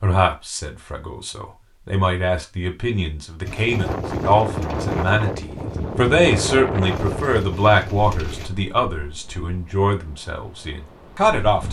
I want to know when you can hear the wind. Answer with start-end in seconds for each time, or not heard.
3.6-11.6.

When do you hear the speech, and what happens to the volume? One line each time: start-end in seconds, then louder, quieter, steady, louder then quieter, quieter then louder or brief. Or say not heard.
0.0-11.6 louder then quieter.